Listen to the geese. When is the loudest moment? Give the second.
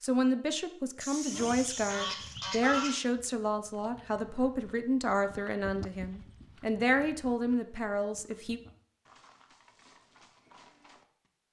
3 s.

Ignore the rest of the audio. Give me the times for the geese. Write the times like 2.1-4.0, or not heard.
1.0-3.0.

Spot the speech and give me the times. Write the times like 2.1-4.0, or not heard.
0.0-8.6.